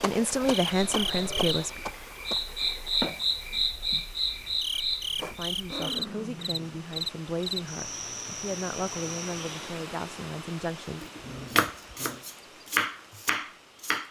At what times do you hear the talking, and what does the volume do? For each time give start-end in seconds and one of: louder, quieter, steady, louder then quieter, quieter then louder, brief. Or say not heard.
0.0-1.8 brief
5.2-11.1 steady.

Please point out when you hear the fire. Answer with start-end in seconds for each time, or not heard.
not heard.